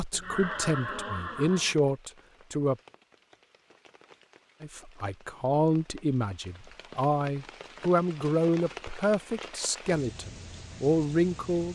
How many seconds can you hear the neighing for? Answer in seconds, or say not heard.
2 s.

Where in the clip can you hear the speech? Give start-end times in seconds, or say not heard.
0.0-2.8, 4.6-11.7.